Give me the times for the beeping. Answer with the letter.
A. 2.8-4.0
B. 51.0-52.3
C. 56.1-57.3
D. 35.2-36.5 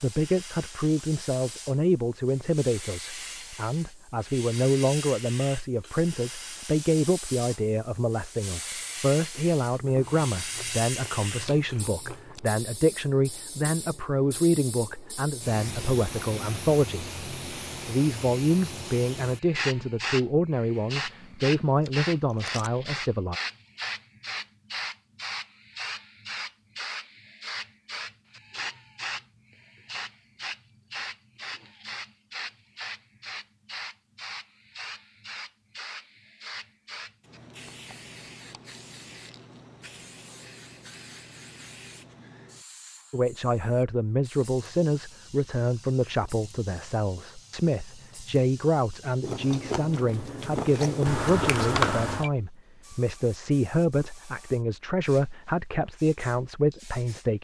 B.